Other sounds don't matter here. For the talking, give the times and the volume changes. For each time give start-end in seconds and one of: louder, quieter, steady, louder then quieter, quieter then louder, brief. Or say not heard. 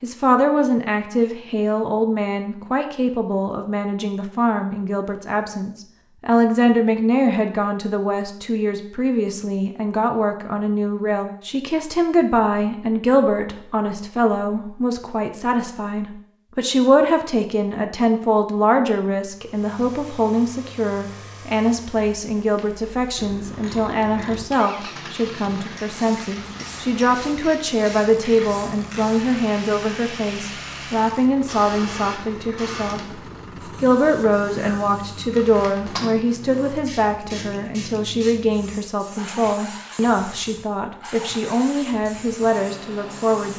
0.0-43.5 steady.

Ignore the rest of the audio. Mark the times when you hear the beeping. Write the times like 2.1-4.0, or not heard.
not heard.